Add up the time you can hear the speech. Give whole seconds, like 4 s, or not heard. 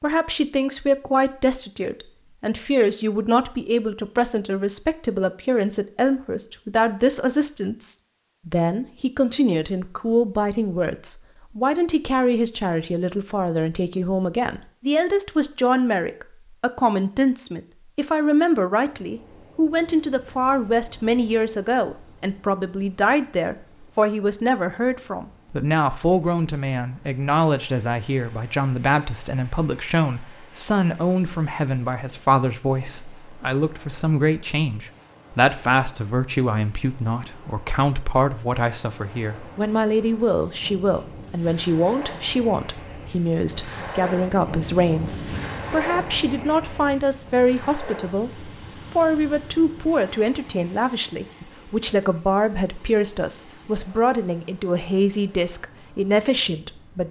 57 s.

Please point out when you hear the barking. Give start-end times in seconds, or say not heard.
not heard.